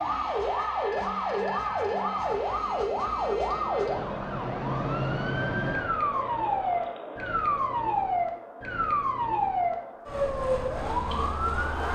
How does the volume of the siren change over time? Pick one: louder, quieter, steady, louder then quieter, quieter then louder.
steady.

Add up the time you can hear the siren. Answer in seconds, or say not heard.
12 s.